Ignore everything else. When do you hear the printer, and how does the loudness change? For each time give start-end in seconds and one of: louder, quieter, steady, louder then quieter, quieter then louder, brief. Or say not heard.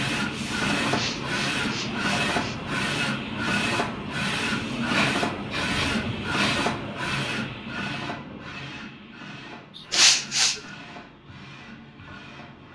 0.0-12.6 quieter.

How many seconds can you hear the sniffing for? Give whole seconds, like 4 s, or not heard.
4 s.